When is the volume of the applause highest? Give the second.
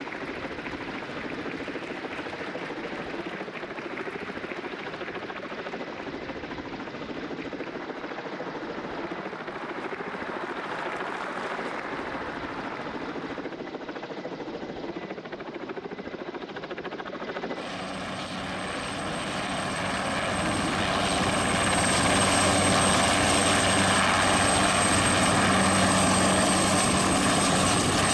11 s.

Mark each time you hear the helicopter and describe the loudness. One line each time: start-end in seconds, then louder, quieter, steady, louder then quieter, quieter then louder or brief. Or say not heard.
0.0-28.0 louder.